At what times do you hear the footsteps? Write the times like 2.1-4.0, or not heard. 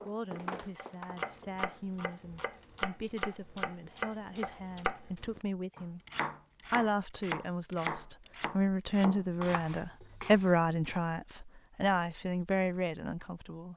0.0-1.6.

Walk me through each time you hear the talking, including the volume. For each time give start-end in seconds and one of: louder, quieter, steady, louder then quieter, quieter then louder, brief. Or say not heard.
0.1-6.0 louder
6.7-13.7 louder then quieter.